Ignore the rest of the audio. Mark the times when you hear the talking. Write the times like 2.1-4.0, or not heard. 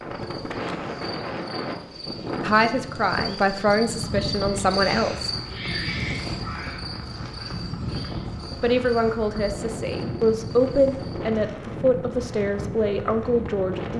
2.4-5.3, 8.6-13.9.